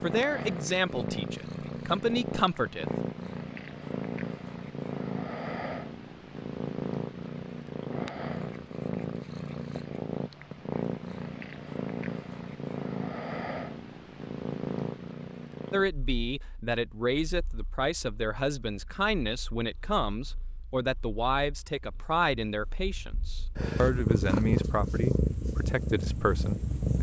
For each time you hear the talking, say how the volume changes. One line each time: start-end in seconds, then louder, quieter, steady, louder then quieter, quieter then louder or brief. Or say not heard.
0.0-2.9 brief
15.7-26.9 steady.